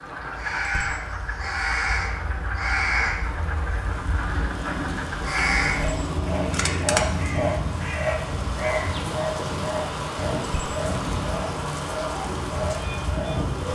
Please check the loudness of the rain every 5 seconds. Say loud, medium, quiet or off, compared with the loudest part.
medium, loud, loud.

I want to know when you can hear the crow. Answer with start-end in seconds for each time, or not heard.
0.2-9.2.